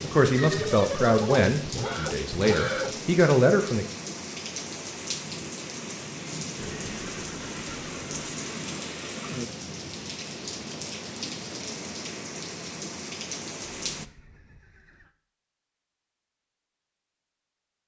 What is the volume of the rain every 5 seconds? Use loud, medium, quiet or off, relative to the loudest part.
loud, loud, loud, off.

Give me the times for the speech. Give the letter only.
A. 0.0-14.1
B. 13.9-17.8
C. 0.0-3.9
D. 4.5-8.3
C.